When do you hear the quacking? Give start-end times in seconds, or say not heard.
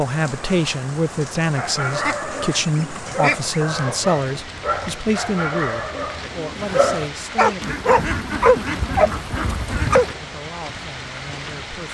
1.9-3.6, 7.6-10.2.